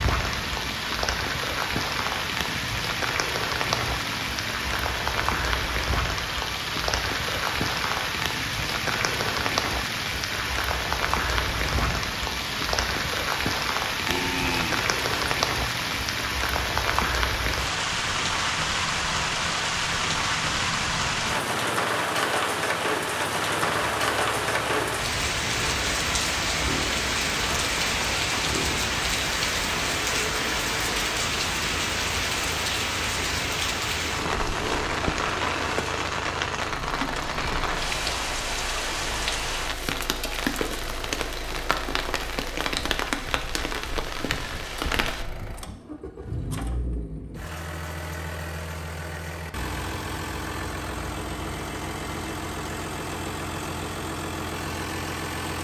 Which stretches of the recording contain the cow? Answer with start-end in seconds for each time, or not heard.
14.1-15.3.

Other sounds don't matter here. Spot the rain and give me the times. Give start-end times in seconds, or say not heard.
0.0-45.2.